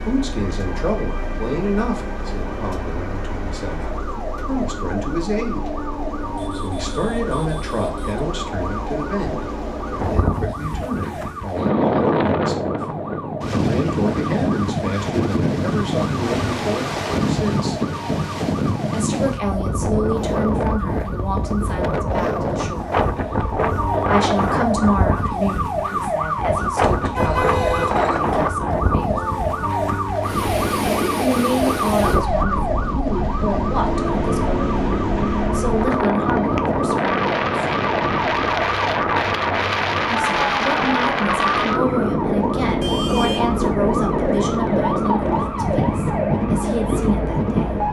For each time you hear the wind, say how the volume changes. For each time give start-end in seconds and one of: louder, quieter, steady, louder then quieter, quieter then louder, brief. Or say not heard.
9.9-47.8 steady.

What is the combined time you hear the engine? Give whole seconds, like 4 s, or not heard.
10 s.